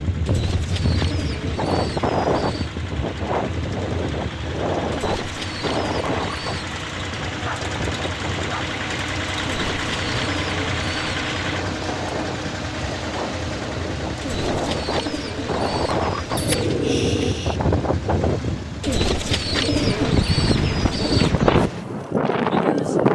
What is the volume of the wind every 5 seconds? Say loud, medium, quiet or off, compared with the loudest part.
medium, medium, medium, medium, loud.